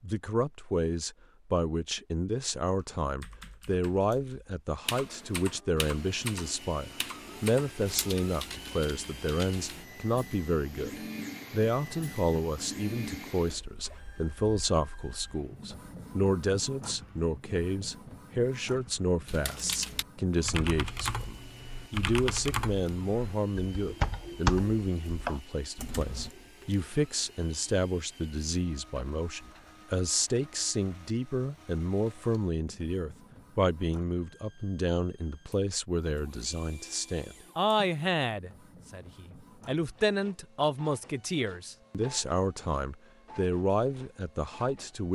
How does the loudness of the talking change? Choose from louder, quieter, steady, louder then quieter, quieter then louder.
steady.